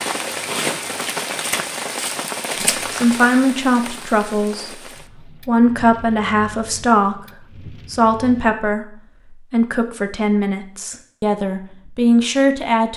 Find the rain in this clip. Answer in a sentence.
The rain can be heard from 0.0 to 8.6 s.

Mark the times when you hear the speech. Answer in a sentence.
You can hear the speech from 2.9 to 4.7 s and from 5.5 to 12.9 s.